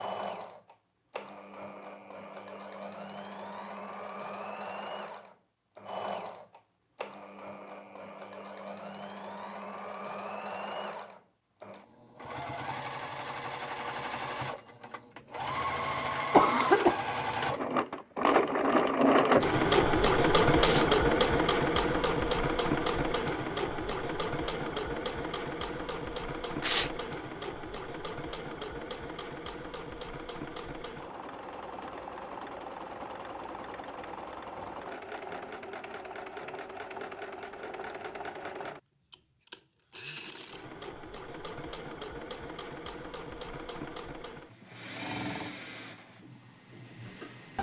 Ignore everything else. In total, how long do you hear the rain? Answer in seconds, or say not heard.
not heard.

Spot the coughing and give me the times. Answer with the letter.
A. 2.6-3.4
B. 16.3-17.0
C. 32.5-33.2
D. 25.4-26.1
B.